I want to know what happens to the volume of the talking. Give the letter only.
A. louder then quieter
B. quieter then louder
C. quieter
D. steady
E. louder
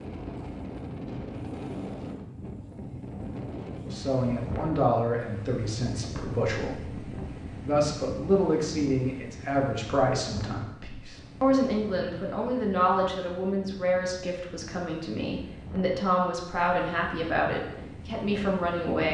D.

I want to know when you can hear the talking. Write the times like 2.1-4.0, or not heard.
3.8-19.0.